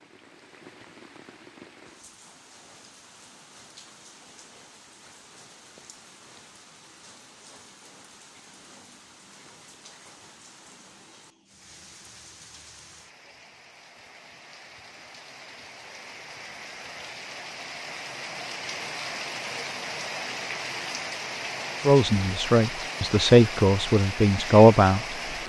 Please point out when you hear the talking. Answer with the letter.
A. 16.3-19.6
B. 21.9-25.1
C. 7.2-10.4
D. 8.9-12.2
B.